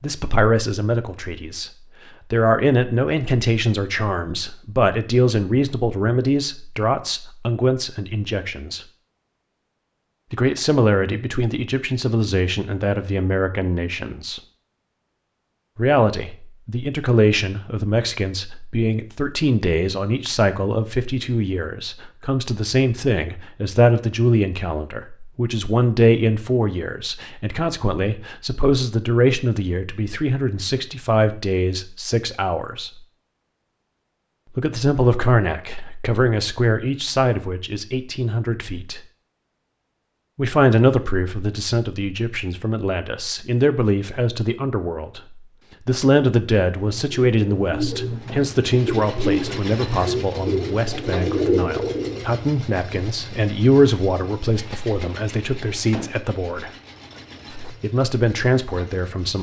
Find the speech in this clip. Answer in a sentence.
The speech can be heard from 0.0 to 8.8 s, from 10.3 to 14.4 s, from 15.8 to 33.0 s, from 34.5 to 39.0 s, from 40.4 to 56.7 s and from 57.5 to 59.3 s.